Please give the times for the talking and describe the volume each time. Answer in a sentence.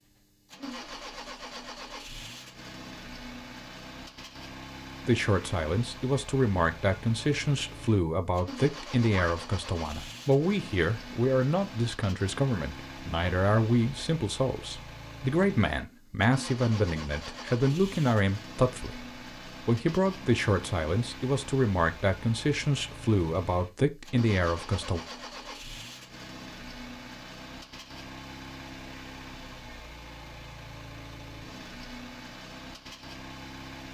You can hear the talking from 5.0 to 25.0 s, at a steady volume.